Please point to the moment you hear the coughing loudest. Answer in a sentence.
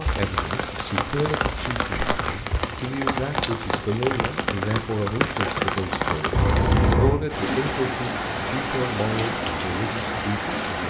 The loudest moment of the coughing is at 7 seconds.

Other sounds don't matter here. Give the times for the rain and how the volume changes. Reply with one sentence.
The rain can be heard from 0.0 to 10.8 s, at a steady volume.